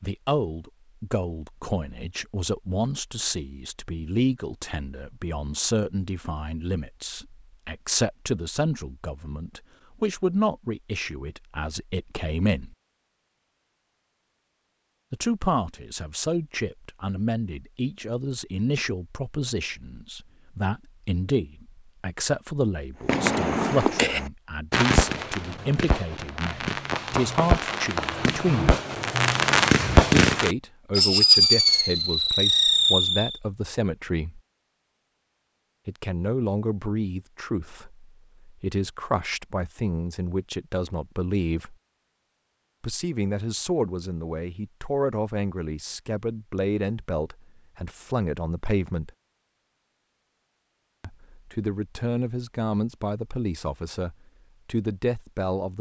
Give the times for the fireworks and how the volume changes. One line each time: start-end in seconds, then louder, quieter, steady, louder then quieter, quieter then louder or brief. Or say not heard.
23.1-33.4 quieter then louder.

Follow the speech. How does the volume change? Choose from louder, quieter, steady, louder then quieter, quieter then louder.
steady.